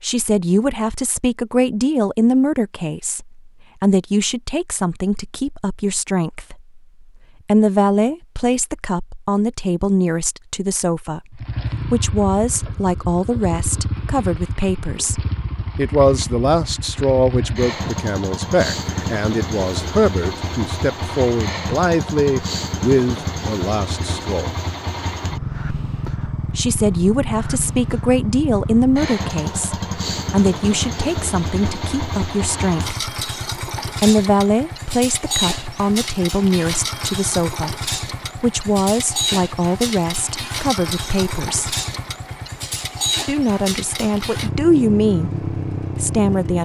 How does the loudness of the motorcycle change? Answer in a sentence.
The loudness of the motorcycle stays about the same.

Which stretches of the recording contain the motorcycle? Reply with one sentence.
You can hear the motorcycle from 11.3 to 46.6 s.